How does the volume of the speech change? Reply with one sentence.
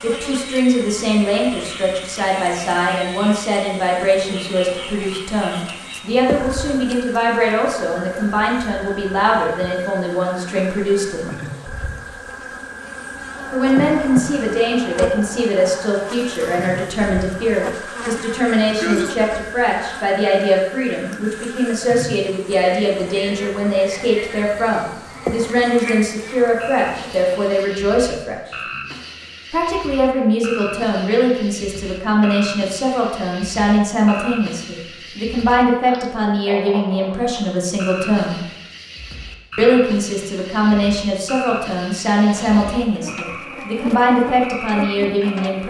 The volume of the speech stays about the same.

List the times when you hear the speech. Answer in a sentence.
You can hear the speech from 0.0 to 11.3 s, from 13.5 to 28.6 s, from 29.5 to 38.5 s and from 39.5 to 45.6 s.